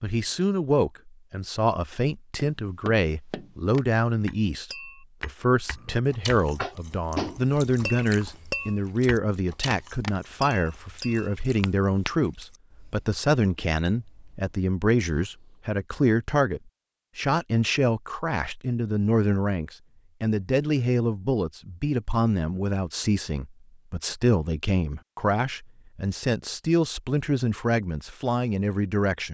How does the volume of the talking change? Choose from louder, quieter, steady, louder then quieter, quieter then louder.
steady.